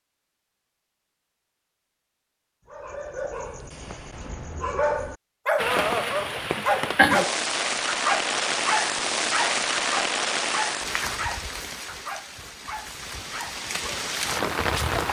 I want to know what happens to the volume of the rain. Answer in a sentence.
The volume of the rain goes down, then up.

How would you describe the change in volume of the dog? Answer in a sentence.
The loudness of the dog goes up, then down.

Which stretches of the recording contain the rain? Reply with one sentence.
You can hear the rain from 5.5 to 15.0 s.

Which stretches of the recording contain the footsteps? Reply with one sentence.
The footsteps can't be heard in this clip.